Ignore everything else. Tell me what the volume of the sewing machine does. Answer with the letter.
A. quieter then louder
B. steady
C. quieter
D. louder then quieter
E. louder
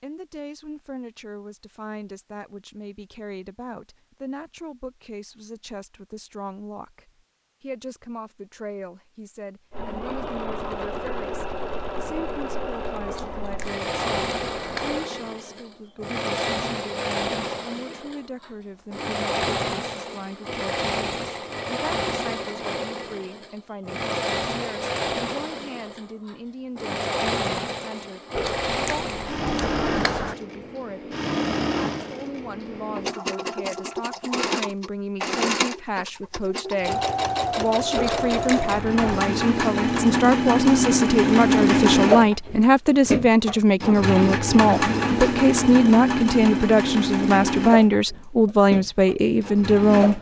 E.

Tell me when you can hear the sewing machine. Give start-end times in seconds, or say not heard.
9.7-50.1.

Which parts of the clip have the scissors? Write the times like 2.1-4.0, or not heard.
13.1-15.1, 28.4-30.4, 38.0-39.2.